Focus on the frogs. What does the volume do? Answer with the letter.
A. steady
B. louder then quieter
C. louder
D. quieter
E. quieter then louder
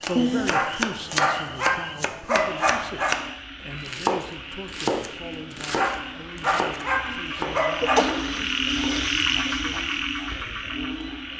C.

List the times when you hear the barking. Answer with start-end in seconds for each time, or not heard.
0.5-3.2, 5.8-8.1.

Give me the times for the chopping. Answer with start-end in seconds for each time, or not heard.
0.0-9.2.